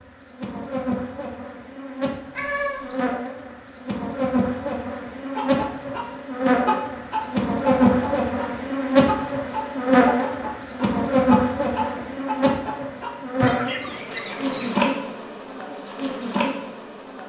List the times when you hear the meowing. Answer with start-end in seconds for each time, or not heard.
2.4-3.0.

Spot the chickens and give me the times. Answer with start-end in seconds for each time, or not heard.
5.3-14.9.